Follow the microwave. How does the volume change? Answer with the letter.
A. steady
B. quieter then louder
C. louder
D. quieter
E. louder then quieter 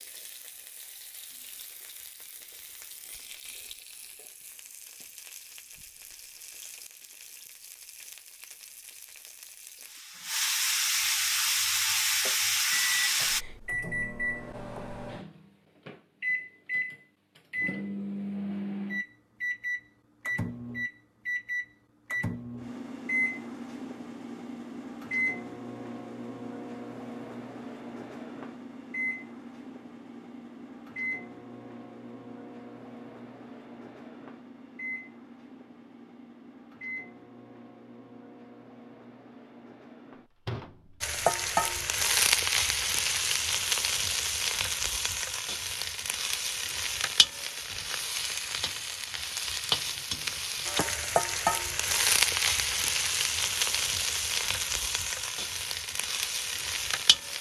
D.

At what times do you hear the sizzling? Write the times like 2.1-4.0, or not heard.
0.0-13.4, 41.0-57.3.